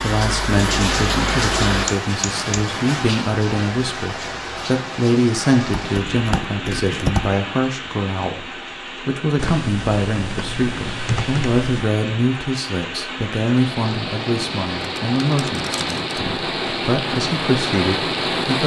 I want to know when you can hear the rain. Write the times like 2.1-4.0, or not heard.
0.0-18.6.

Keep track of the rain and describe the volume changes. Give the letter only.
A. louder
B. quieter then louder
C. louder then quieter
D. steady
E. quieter
B.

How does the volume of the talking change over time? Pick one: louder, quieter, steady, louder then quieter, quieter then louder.
steady.